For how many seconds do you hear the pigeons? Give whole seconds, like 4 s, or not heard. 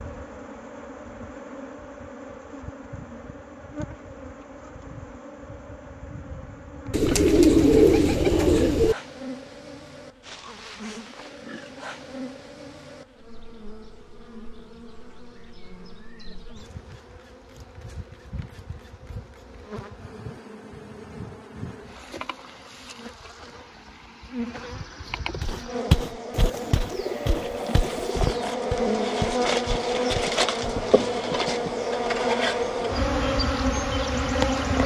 4 s.